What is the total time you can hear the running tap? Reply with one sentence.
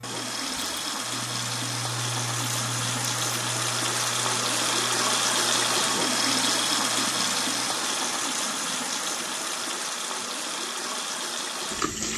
The running tap can be heard for 12 seconds in total.